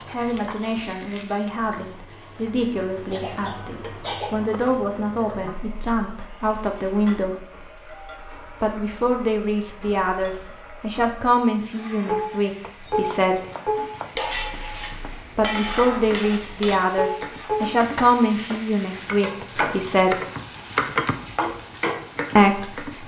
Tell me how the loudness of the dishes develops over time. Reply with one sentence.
The volume of the dishes goes down, then up.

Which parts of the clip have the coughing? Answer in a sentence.
You can hear the coughing from 3.1 to 4.6 s.